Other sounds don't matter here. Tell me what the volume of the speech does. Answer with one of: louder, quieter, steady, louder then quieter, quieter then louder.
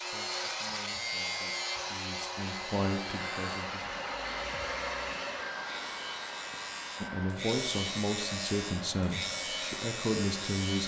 louder.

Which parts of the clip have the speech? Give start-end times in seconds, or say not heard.
0.0-4.0, 7.0-10.8.